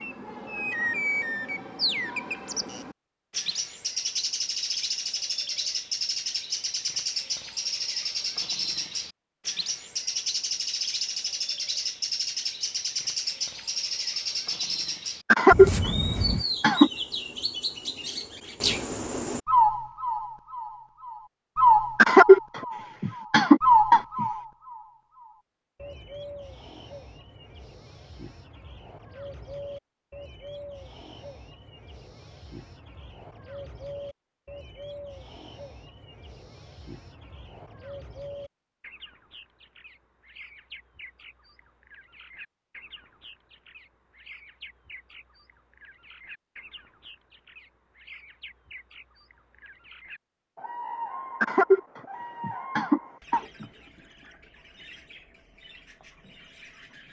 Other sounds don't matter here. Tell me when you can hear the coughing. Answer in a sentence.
The coughing can be heard from 15.3 to 16.9 s, from 21.9 to 24.2 s and from 51.4 to 53.6 s.